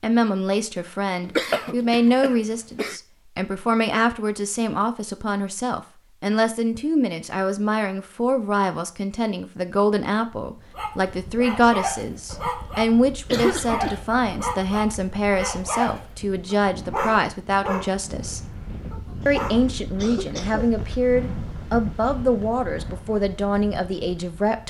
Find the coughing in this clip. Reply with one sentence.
The coughing can be heard from 1.2 to 3.0 s, from 12.8 to 14.1 s and from 19.2 to 21.0 s.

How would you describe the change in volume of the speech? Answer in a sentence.
The volume of the speech stays about the same.